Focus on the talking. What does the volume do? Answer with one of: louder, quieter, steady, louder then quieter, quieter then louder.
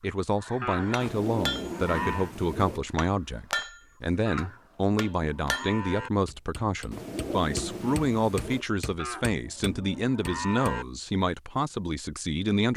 steady.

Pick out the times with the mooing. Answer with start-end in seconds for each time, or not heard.
0.6-2.3, 4.2-6.1, 8.9-10.8.